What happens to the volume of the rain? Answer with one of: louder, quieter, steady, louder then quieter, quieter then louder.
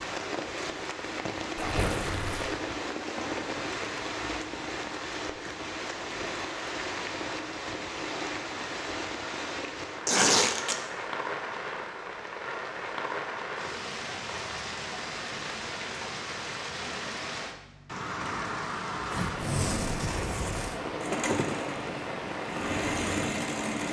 steady.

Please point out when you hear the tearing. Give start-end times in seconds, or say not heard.
1.6-2.5, 10.1-10.8, 19.1-20.8.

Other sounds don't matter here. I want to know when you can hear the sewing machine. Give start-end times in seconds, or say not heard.
21.0-23.8.